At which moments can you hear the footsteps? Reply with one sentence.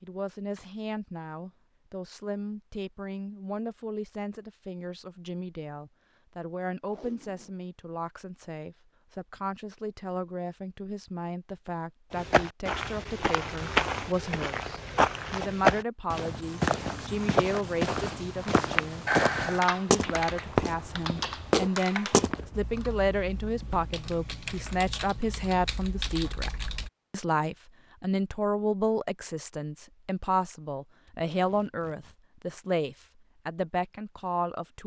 The footsteps can be heard from 12.2 to 22.6 s.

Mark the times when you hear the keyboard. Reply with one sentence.
The keyboard can be heard from 19.1 to 26.9 s.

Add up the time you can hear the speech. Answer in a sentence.
You can hear the speech for 35 seconds altogether.